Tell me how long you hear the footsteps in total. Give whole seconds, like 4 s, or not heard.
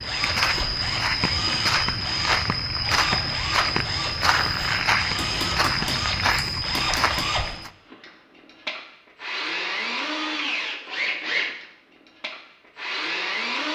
8 s.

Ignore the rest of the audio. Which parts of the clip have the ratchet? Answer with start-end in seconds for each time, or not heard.
not heard.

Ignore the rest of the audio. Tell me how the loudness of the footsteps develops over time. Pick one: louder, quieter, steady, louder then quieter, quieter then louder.
steady.